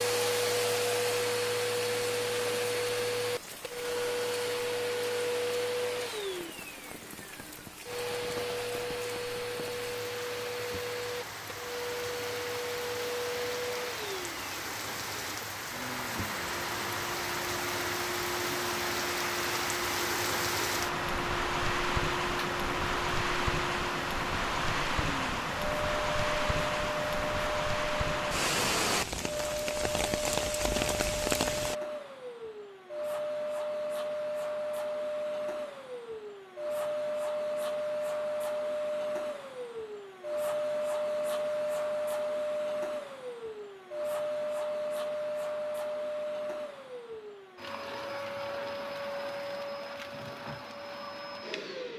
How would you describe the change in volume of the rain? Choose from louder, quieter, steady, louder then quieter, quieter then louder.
louder.